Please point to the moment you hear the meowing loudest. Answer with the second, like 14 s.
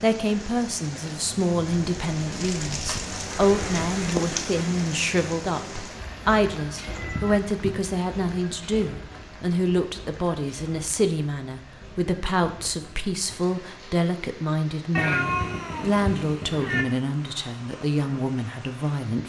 15 s.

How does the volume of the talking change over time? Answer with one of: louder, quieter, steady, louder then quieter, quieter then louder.
steady.